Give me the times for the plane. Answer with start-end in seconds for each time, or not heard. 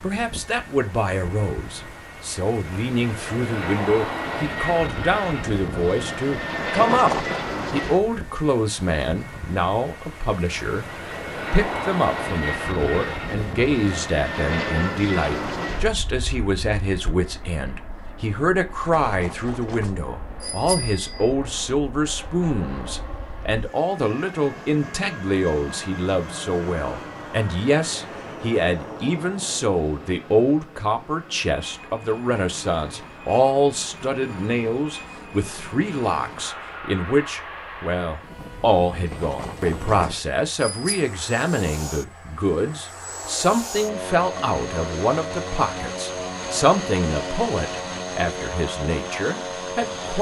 0.0-50.1.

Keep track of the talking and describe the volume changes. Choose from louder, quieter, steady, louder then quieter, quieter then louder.
steady.